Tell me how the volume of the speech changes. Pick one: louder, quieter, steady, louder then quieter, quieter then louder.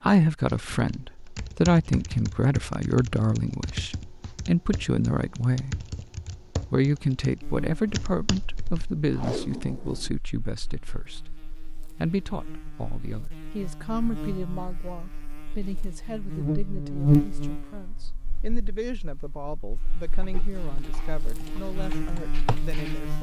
quieter.